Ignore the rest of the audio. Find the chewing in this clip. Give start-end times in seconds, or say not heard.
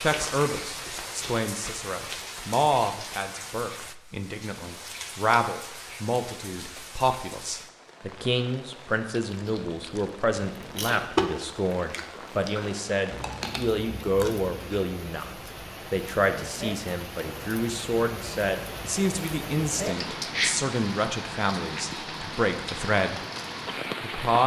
9.1-14.9.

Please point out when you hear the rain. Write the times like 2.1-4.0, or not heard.
0.0-24.4.